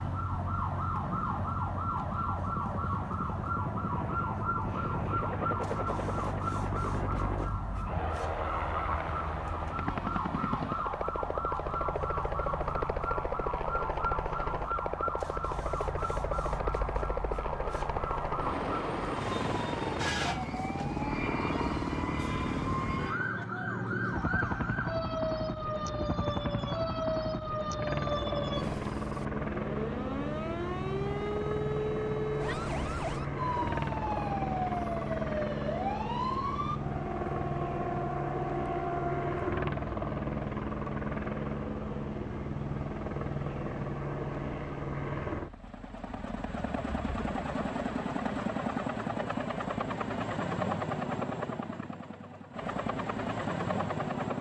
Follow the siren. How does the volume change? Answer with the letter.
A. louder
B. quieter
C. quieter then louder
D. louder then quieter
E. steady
E.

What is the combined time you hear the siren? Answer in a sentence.
The siren can be heard for 40 seconds in total.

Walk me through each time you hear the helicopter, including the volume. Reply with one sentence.
The helicopter can be heard from 0.0 to 54.3 s, at a steady volume.